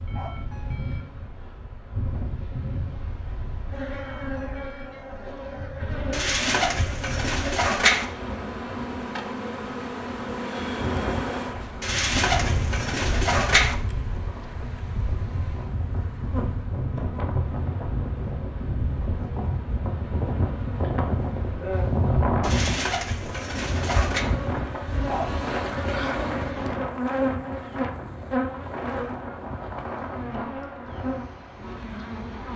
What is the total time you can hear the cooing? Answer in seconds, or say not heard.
6 s.